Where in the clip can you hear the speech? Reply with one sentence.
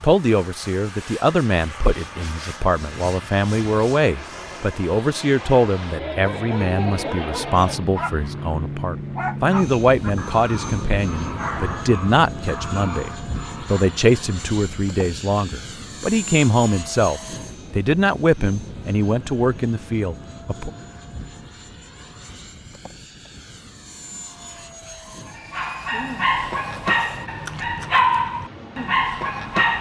The speech can be heard from 0.0 to 20.7 s.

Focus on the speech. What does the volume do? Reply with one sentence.
The loudness of the speech stays about the same.